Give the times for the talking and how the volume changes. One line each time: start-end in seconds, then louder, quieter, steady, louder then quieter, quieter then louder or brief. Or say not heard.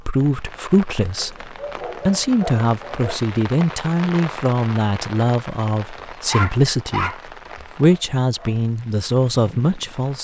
0.0-10.2 steady.